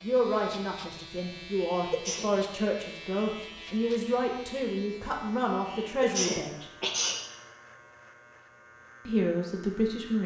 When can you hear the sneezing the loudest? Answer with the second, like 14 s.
6 s.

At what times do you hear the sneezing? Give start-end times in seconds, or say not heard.
1.7-2.2, 5.7-7.2.